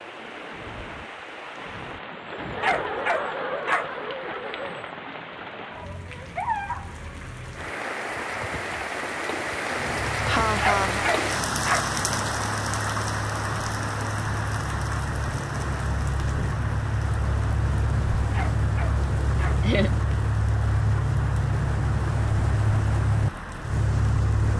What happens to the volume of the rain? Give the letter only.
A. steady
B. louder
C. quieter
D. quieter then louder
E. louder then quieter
E.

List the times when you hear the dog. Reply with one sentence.
You can hear the dog from 2.6 to 3.9 s, from 10.6 to 11.8 s and from 18.3 to 19.6 s.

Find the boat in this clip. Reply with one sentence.
The boat can be heard from 9.7 to 24.5 s.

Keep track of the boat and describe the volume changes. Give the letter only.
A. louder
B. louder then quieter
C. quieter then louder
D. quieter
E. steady
A.